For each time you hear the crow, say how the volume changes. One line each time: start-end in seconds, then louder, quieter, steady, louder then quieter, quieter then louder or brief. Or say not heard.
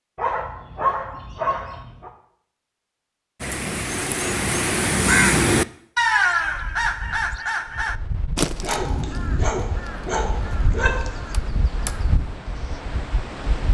3.4-12.8 quieter.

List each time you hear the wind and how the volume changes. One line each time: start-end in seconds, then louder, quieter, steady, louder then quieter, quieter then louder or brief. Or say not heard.
6.2-13.6 louder.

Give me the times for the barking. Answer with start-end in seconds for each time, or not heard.
0.1-2.1, 8.6-11.2.